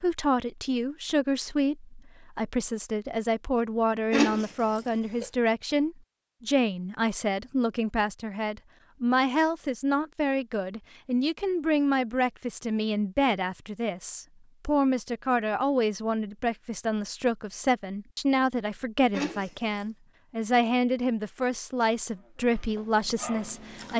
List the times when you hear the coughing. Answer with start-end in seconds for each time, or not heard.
4.1-5.2, 19.1-19.9.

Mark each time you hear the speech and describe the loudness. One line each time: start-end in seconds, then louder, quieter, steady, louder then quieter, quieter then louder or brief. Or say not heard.
0.0-23.9 steady.